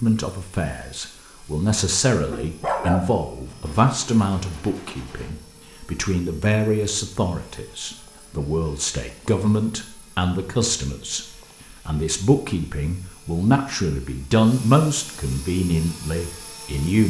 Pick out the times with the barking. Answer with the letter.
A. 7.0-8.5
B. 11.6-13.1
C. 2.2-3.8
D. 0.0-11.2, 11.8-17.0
C.